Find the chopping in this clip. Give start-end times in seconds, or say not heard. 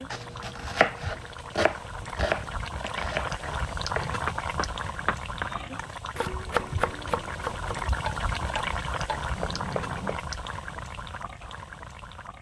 0.1-10.2.